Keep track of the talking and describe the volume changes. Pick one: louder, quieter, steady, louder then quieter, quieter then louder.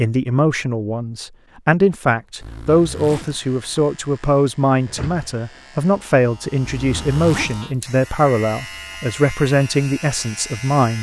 steady.